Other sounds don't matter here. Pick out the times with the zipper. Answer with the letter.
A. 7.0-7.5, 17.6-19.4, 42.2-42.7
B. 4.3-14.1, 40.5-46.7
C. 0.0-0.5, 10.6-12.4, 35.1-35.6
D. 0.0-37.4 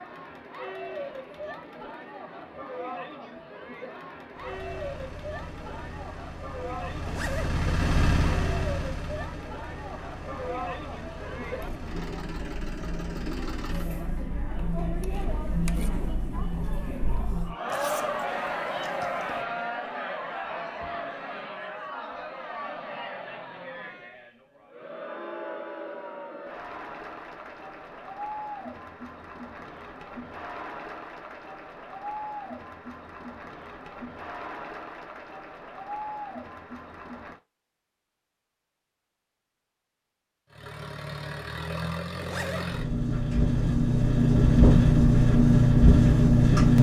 A.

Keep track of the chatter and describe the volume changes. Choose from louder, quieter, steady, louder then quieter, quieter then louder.
louder then quieter.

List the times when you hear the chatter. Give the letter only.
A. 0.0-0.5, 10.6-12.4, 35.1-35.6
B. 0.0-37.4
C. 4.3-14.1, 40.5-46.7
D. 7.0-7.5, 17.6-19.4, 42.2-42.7
B.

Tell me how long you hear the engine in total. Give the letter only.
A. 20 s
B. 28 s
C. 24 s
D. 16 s
D.